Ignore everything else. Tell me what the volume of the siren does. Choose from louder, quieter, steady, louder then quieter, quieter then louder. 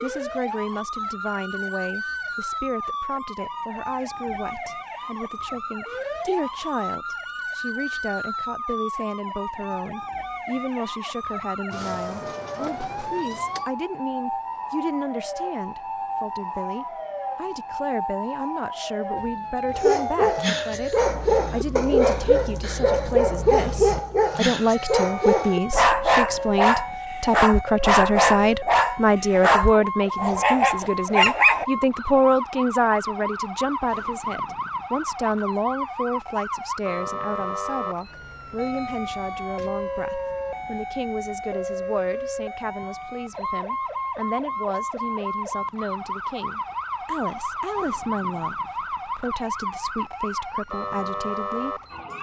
steady.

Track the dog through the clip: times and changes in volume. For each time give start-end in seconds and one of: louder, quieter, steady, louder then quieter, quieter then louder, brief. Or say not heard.
19.8-31.6 steady.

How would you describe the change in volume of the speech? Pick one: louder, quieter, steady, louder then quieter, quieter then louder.
louder then quieter.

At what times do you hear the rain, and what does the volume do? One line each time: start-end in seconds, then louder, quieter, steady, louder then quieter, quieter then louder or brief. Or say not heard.
not heard.